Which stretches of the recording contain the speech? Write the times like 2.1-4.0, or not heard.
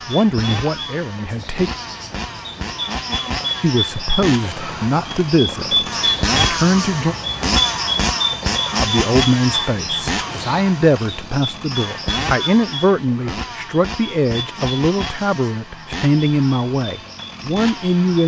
0.1-1.7, 3.6-7.2, 8.8-18.2.